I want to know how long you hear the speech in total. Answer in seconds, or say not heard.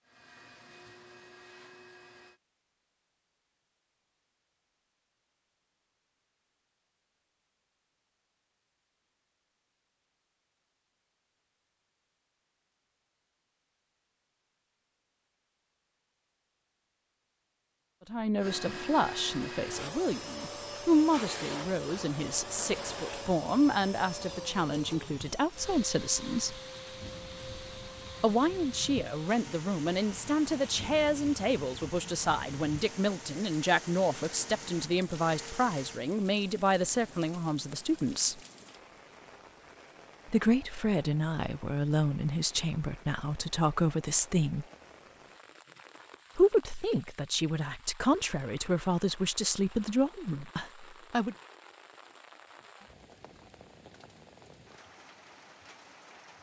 28 s.